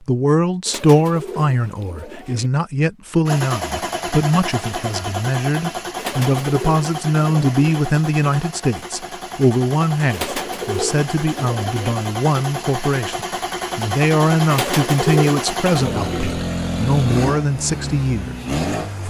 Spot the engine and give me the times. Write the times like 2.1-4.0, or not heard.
3.2-19.0.